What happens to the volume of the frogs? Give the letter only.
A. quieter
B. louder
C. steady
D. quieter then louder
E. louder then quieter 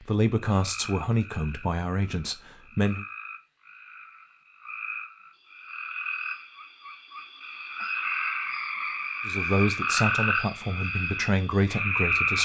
B.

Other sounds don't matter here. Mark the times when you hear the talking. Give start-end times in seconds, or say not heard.
0.0-3.0, 9.2-12.4.